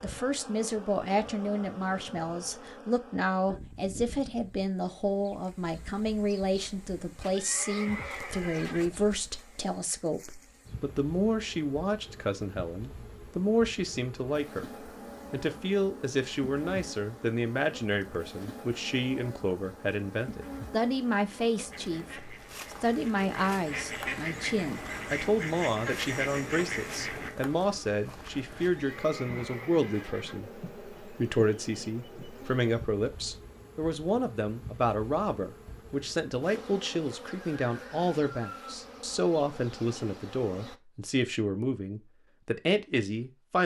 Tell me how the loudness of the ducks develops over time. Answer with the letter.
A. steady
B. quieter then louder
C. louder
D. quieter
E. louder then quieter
C.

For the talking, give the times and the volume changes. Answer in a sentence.
You can hear the talking from 0.0 to 43.6 s, at a steady volume.